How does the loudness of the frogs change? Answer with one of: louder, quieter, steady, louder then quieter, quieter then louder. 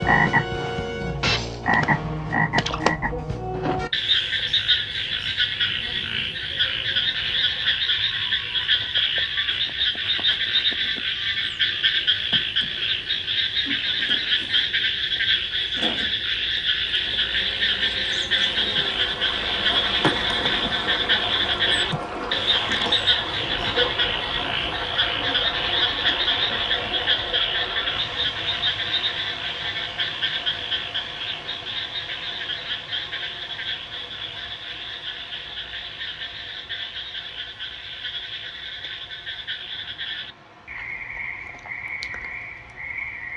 quieter.